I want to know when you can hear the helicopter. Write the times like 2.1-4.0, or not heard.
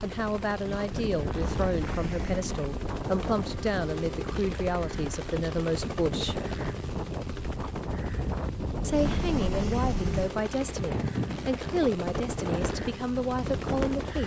0.0-14.2.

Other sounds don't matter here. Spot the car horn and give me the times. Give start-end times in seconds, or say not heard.
1.6-2.5, 8.9-10.3.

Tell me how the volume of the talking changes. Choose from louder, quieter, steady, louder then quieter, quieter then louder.
steady.